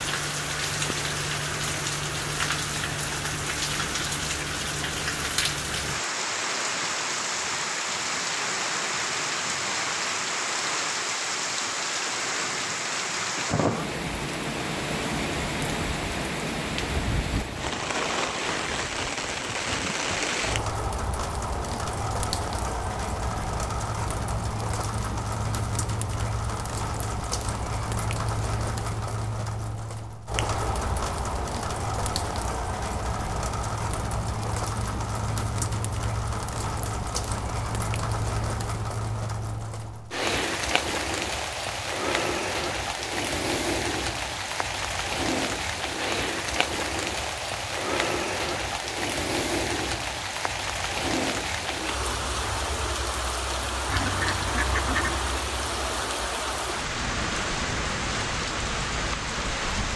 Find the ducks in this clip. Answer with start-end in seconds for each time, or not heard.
53.9-55.5.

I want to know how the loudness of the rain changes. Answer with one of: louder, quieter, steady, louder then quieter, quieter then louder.
steady.